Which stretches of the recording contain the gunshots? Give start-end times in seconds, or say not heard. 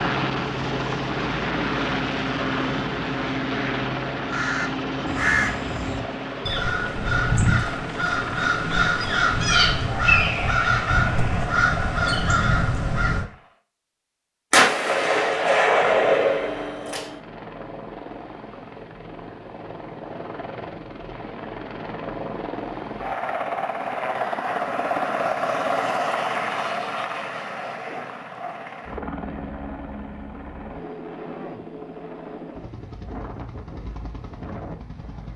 14.5-17.1.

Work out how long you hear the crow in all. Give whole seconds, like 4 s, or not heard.
9 s.